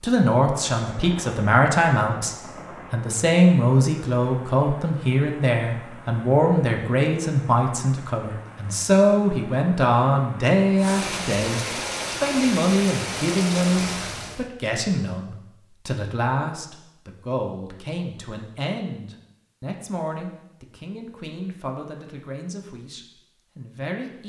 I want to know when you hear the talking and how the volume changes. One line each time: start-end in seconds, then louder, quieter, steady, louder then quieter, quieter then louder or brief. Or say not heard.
0.0-24.2 quieter.